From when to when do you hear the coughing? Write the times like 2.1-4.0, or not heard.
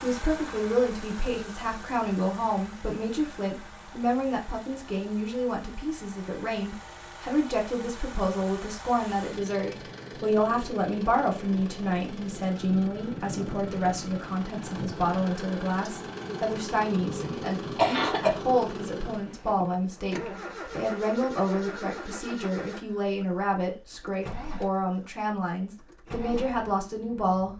17.2-18.3.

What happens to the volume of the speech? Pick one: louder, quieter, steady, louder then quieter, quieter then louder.
steady.